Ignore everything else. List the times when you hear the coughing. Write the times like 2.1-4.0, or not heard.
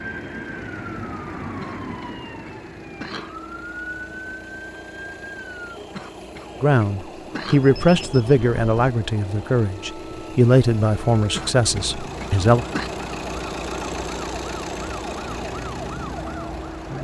1.6-3.4, 5.9-7.7, 11.3-12.9.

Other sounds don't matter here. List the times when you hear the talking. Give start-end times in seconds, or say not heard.
6.6-12.7.